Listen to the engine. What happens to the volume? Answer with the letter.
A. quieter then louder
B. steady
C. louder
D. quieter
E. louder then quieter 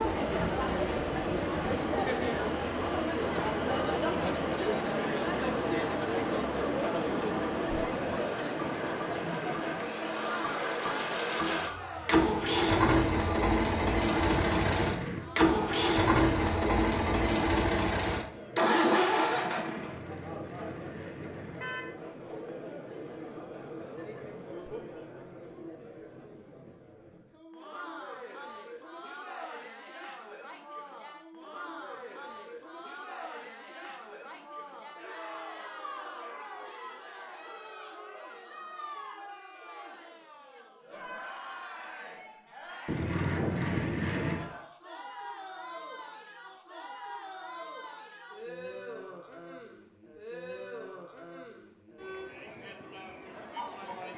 C.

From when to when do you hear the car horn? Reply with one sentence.
You can hear the car horn from 14.4 to 15.3 s, from 19.8 to 21.9 s and from 42.9 to 44.5 s.